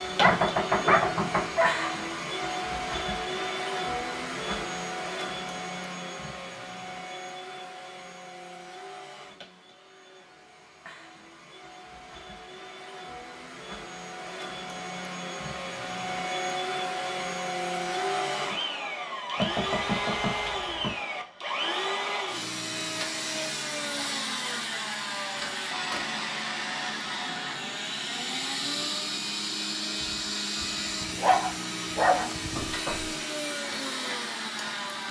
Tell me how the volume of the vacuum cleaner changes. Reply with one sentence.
The loudness of the vacuum cleaner goes down, then up.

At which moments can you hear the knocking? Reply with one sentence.
You can hear the knocking from 0.2 to 1.6 s, from 19.4 to 20.9 s and from 32.5 to 33.2 s.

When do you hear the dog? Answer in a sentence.
You can hear the dog from 0.2 to 1.9 s and from 30.0 to 32.8 s.